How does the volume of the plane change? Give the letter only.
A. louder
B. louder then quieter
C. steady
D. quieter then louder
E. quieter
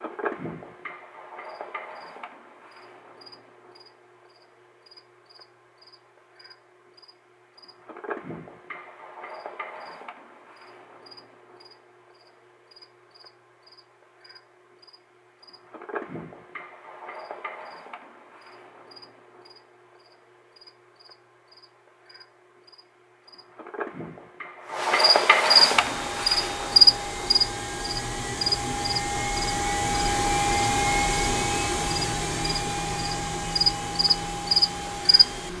B.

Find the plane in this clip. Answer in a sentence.
You can hear the plane from 25.7 to 35.5 s.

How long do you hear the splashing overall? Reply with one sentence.
The splashing can't be heard in this clip.